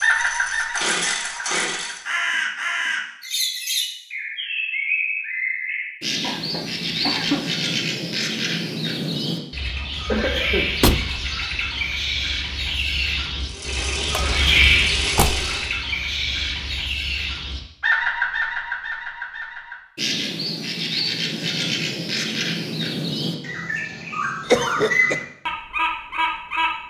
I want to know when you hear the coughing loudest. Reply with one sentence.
The volume of the coughing peaks at 25 seconds.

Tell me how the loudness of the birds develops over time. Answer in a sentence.
The loudness of the birds stays about the same.